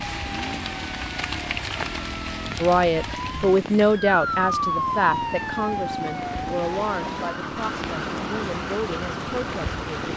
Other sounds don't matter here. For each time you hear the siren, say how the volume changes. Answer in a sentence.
You can hear the siren from 0.0 to 10.1 s, getting louder then quieter.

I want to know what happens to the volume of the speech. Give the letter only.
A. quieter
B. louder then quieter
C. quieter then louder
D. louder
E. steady
A.